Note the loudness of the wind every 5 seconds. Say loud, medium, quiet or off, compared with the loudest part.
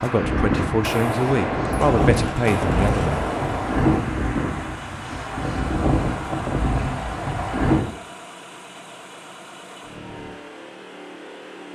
loud, loud, off.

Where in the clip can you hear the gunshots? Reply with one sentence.
You can hear the gunshots from 0.8 to 3.9 s.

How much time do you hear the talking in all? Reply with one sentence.
The talking can be heard for 3 seconds in total.